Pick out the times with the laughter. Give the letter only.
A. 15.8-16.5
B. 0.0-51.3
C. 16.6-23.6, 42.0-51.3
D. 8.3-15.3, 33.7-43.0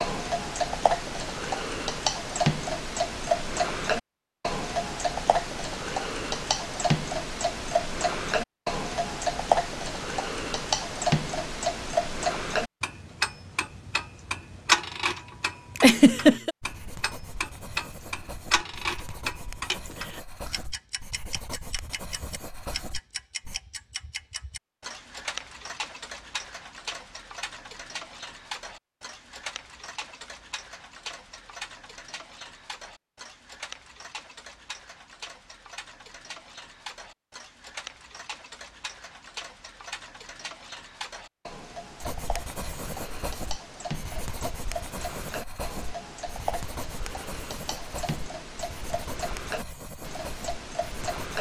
A.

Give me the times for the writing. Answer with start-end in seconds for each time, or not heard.
16.6-23.6, 42.0-51.3.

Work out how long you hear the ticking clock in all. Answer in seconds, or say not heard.
51 s.